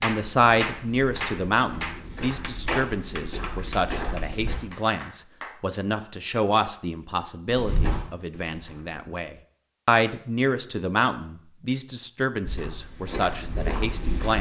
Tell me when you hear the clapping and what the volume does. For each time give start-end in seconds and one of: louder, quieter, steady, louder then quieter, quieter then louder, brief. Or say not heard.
0.0-5.6 quieter.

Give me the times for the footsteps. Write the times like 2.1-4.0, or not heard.
0.2-4.5, 7.5-9.1, 12.4-14.3.